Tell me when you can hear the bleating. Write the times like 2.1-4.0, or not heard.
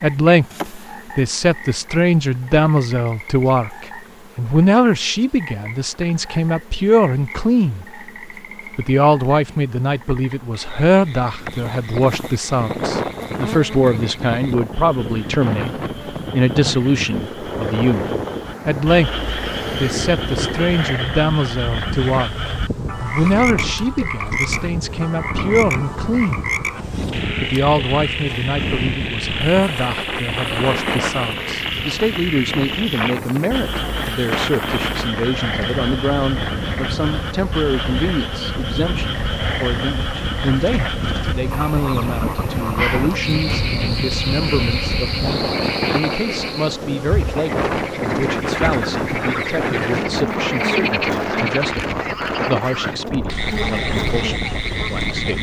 not heard.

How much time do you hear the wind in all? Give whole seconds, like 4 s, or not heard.
44 s.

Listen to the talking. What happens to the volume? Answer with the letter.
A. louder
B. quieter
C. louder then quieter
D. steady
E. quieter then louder
B.